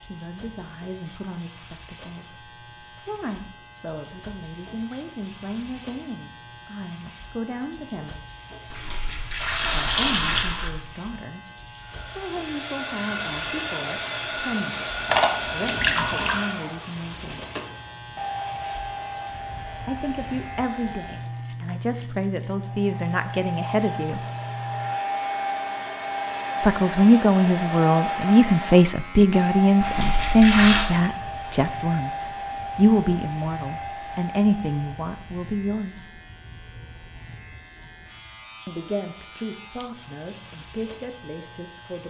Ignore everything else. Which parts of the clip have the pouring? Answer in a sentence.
You can hear the pouring from 8.7 to 10.7 s, from 15.1 to 16.4 s and from 29.8 to 30.9 s.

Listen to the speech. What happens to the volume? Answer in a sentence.
The volume of the speech goes up, then down.